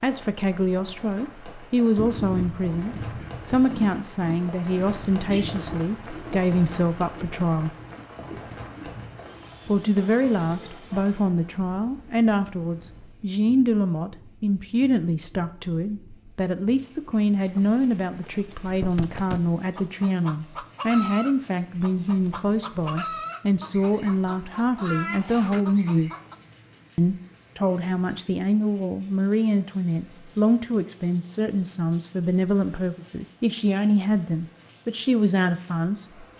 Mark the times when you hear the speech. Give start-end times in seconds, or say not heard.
0.0-7.8, 9.7-26.1, 26.9-36.0.